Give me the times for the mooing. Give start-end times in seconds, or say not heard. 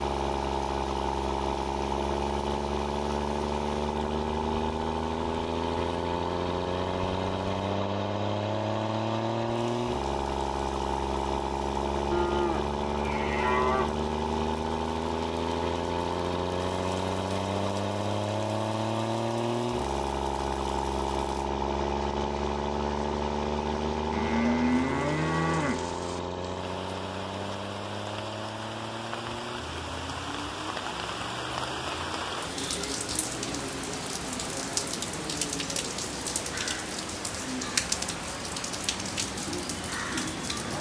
12.1-14.0, 24.1-25.9.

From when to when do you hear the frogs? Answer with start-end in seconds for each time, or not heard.
not heard.